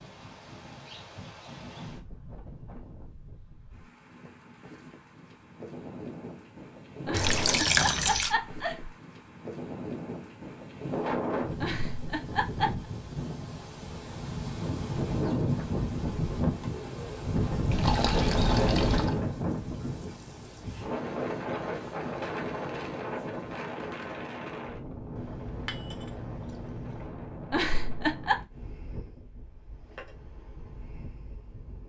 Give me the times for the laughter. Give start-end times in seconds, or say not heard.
7.0-8.9, 11.6-12.8, 27.5-28.4.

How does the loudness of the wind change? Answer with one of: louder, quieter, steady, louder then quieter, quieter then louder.
louder then quieter.